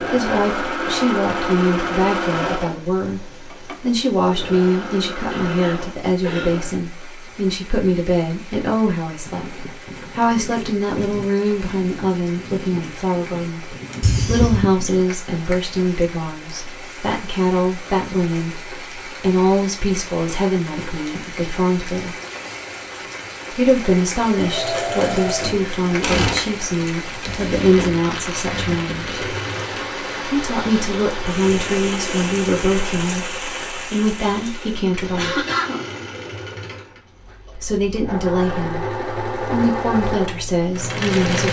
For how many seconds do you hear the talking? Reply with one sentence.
You can hear the talking for 37 seconds altogether.